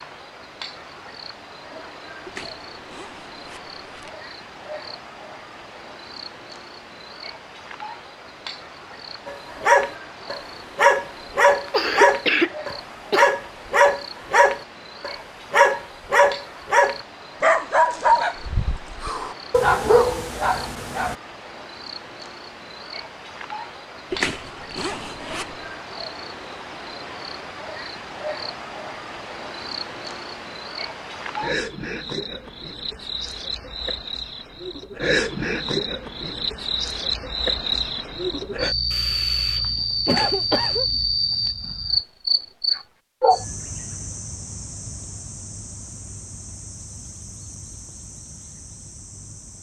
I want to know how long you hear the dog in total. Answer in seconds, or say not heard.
12 s.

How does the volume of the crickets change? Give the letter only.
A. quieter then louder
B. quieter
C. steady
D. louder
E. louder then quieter
D.